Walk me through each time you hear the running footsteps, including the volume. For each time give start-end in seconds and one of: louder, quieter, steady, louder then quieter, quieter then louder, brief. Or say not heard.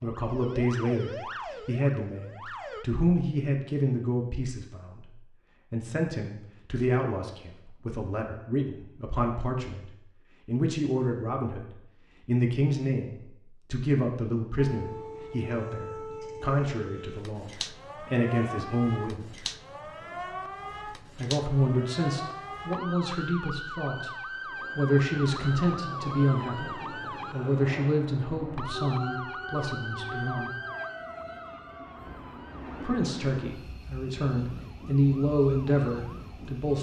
not heard.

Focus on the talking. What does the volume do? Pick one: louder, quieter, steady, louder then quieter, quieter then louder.
steady.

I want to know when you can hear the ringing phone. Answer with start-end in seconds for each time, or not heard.
not heard.